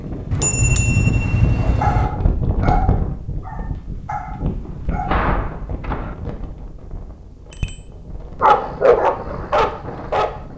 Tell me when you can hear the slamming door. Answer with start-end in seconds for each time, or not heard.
4.6-6.2.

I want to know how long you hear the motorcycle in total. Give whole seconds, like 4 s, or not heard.
2 s.